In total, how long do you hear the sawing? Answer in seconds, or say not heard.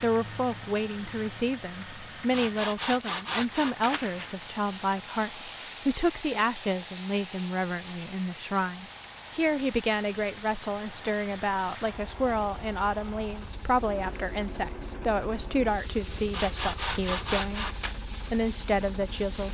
4 s.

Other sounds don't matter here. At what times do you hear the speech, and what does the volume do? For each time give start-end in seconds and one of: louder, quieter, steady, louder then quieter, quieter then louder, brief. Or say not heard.
0.0-19.4 steady.